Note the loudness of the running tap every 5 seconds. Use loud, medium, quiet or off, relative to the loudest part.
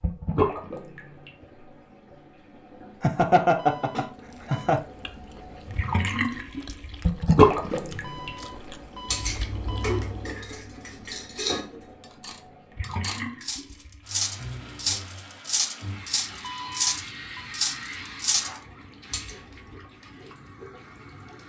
medium, loud, quiet, quiet, quiet.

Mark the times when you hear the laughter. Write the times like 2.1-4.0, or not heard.
3.0-4.8.